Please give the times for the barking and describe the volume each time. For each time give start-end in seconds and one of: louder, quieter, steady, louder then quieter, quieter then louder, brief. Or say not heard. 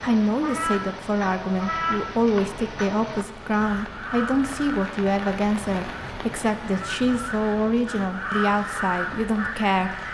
not heard.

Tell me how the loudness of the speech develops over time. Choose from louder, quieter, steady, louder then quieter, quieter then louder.
steady.